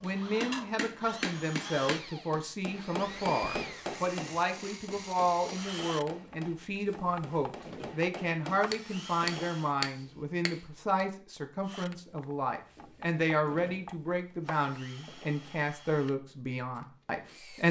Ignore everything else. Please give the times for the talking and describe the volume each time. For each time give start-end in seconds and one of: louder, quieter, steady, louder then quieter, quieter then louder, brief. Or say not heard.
0.0-17.6 steady.